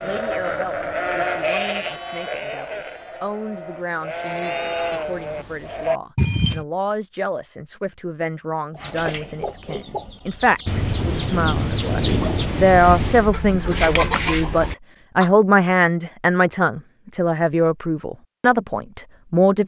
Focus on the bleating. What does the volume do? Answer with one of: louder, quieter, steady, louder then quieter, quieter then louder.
quieter then louder.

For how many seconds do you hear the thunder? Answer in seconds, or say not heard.
3 s.